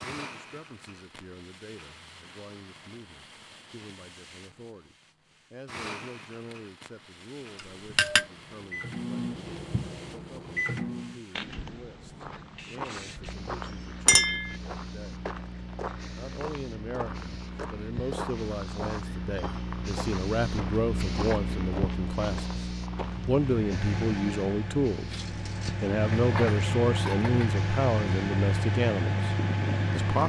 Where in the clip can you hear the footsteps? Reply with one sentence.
You can hear the footsteps from 12.2 to 23.8 s.